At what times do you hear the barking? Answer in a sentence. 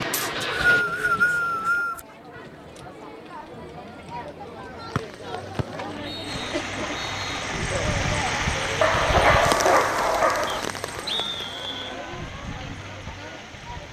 The barking can be heard from 8.8 to 10.7 s.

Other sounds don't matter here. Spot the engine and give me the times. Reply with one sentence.
You can hear the engine from 0.0 to 1.9 s and from 6.2 to 13.8 s.